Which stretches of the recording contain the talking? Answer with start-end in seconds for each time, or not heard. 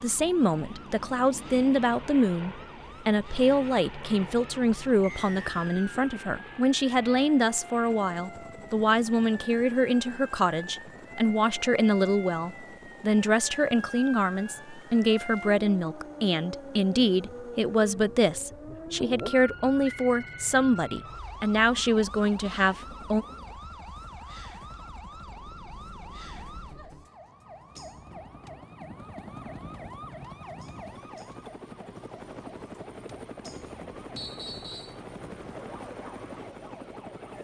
0.0-23.2.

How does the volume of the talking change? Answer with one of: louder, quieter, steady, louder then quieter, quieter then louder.
steady.